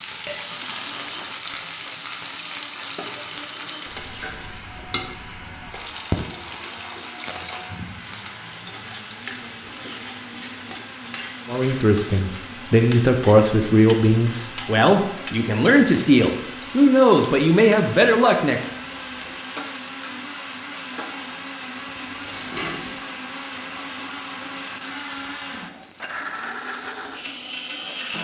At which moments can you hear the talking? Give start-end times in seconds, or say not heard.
11.4-18.6.